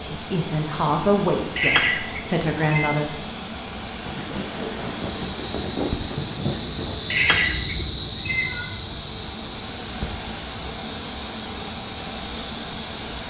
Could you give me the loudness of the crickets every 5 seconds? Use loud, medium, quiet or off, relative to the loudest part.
medium, loud, medium.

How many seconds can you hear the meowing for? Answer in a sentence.
The meowing can be heard for 3 seconds in total.